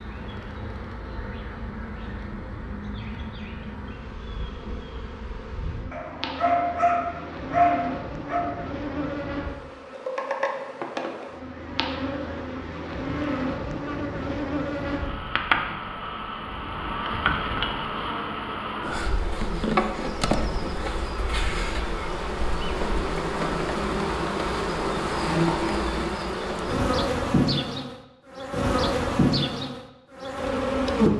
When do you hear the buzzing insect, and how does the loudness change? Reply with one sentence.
The buzzing insect can be heard from 0.0 to 31.1 s, getting louder.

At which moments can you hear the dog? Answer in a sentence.
The dog can be heard from 5.9 to 8.4 s.